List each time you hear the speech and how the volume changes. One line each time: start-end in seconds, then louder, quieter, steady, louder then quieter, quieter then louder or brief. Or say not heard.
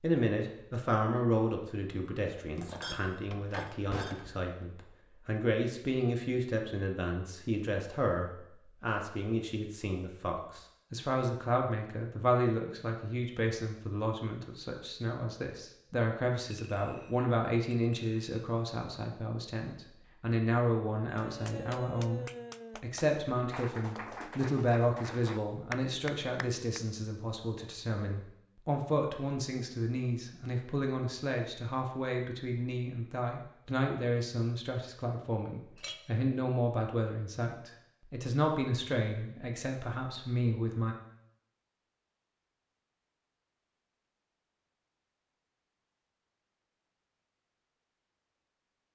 0.0-41.0 steady.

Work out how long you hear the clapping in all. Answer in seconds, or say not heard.
6 s.